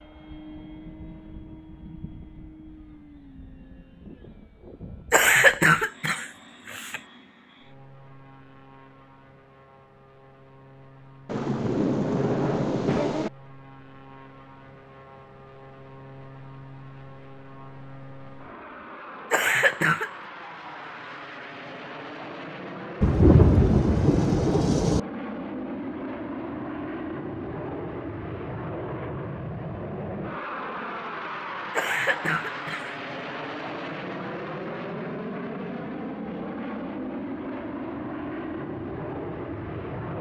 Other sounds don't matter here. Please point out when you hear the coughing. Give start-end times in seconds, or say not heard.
5.1-7.0, 19.3-20.1, 31.8-32.9.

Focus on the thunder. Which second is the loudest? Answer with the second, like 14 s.
23 s.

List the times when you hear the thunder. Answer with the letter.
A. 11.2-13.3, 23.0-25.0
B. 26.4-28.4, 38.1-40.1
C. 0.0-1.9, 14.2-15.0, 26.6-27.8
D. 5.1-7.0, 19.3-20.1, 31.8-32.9
A.